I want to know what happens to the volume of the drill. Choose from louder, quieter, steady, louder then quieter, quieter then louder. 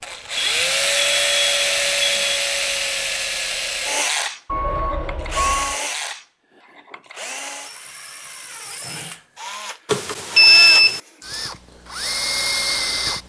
quieter then louder.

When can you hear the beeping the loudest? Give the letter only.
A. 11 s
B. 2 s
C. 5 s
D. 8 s
A.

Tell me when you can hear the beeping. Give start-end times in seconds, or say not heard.
0.3-2.4, 4.5-5.8, 9.8-11.0.